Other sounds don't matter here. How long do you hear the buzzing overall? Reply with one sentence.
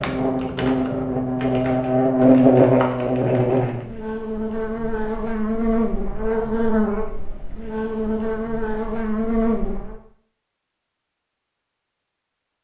The buzzing can be heard for 10 seconds in total.